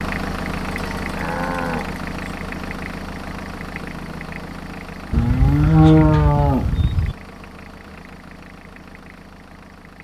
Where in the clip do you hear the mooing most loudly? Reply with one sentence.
The loudest moment of the mooing is at 6 seconds.